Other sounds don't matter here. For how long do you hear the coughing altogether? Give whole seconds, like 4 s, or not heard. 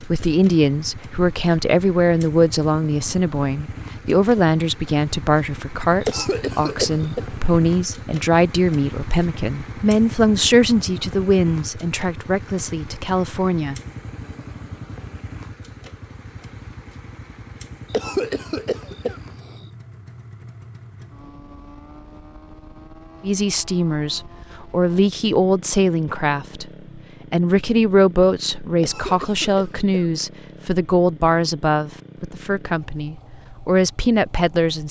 4 s.